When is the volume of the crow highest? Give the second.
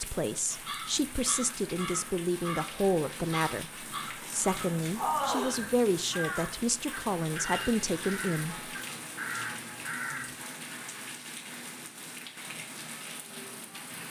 5 s.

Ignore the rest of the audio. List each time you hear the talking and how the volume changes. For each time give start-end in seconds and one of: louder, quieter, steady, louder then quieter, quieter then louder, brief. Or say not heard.
0.0-8.7 steady.